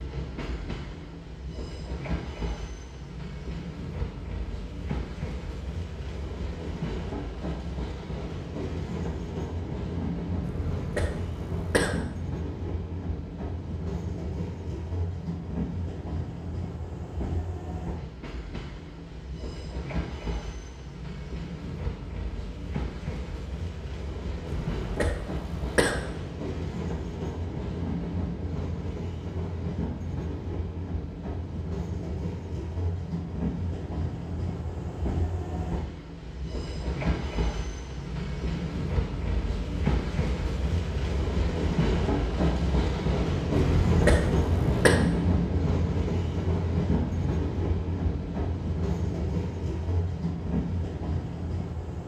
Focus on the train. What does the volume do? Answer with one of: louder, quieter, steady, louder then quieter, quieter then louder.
louder.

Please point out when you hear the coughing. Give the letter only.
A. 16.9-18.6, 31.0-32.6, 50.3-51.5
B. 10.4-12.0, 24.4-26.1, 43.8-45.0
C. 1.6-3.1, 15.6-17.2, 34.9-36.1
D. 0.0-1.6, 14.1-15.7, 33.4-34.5
B.